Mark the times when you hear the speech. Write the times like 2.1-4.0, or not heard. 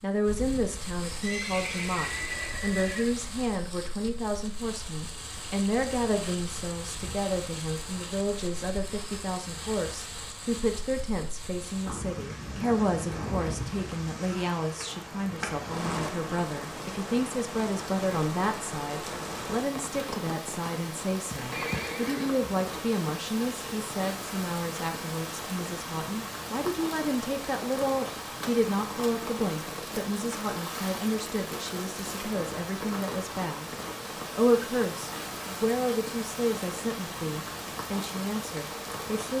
0.0-33.7, 34.3-39.3.